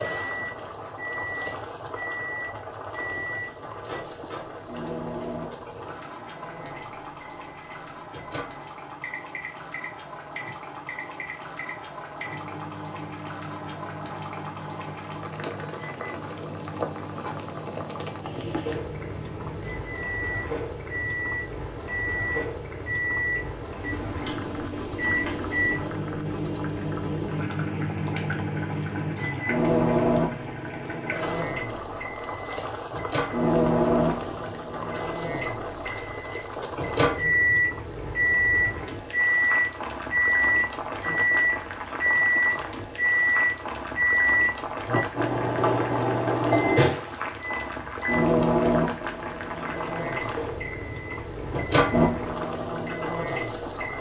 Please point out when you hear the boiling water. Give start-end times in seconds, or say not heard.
0.0-53.9.